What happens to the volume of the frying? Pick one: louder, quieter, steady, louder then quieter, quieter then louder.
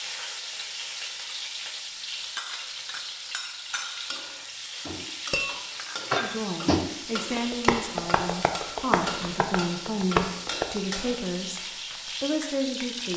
steady.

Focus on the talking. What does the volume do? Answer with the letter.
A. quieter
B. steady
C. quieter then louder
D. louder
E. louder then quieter
B.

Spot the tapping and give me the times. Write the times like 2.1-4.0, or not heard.
4.8-10.8.